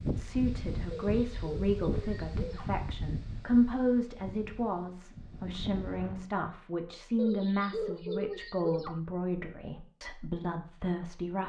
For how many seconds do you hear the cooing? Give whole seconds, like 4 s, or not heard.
4 s.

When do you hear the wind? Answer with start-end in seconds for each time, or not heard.
0.0-6.3.